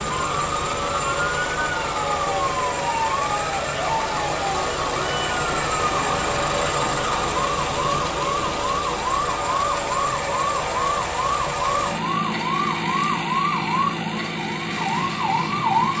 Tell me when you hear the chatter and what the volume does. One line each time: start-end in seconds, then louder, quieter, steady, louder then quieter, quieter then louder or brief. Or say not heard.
not heard.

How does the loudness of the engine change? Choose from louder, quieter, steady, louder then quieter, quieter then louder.
steady.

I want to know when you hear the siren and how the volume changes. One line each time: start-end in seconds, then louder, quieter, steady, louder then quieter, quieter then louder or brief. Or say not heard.
0.0-15.9 steady.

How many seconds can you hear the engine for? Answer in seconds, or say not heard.
16 s.